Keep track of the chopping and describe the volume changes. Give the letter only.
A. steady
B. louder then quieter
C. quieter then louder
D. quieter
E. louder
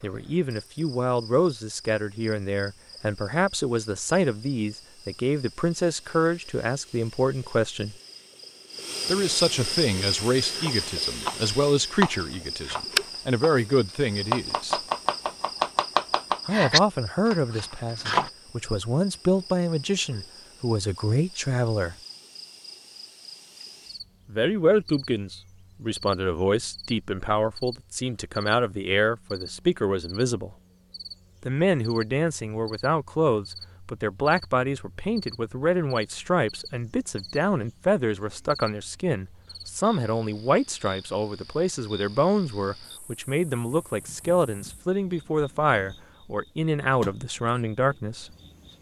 C.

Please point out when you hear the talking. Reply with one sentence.
The talking can be heard from 0.0 to 8.0 s, from 9.1 to 14.8 s, from 16.4 to 21.9 s, from 24.3 to 30.6 s and from 31.4 to 48.3 s.